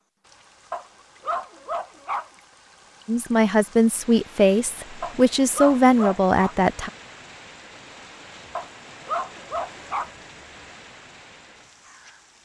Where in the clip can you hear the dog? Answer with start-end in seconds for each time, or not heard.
0.7-2.3, 5.0-6.5, 8.6-10.1.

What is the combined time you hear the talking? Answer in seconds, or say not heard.
4 s.